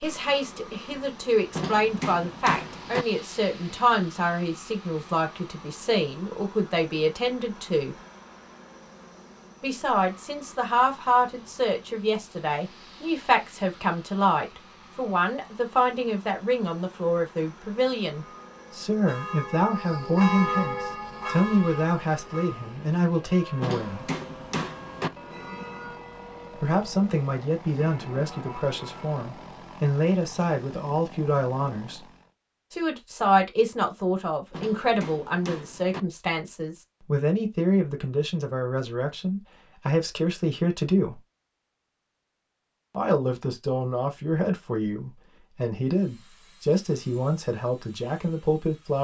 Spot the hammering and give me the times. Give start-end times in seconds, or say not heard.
1.5-3.0, 23.6-25.1, 34.5-36.0.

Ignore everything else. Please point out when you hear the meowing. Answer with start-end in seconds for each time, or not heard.
not heard.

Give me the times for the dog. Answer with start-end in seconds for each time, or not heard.
not heard.